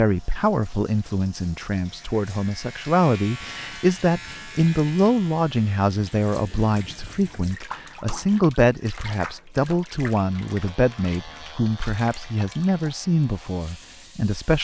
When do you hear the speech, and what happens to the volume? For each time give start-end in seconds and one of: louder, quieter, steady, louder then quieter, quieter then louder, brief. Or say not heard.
0.0-14.5 steady.